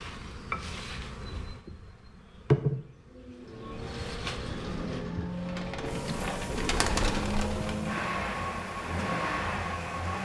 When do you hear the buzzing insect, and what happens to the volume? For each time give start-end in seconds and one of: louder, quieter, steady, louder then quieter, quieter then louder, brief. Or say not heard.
0.0-10.2 louder then quieter.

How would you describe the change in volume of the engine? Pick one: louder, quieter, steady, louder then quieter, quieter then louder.
louder.